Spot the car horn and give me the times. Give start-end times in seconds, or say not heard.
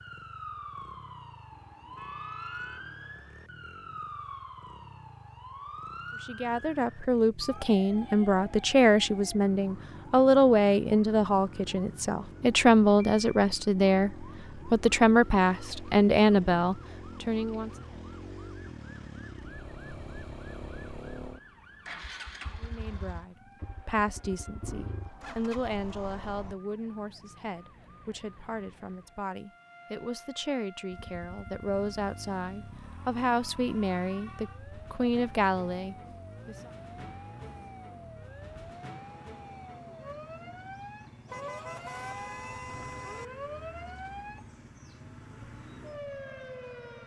1.5-3.0, 41.2-43.2.